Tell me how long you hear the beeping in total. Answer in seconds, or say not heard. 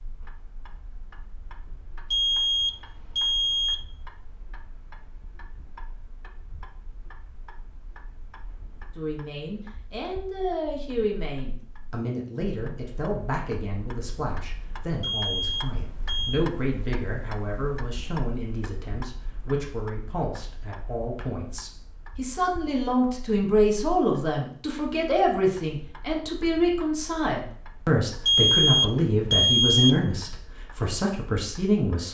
5 s.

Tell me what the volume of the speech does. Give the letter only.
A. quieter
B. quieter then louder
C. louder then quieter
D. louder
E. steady
D.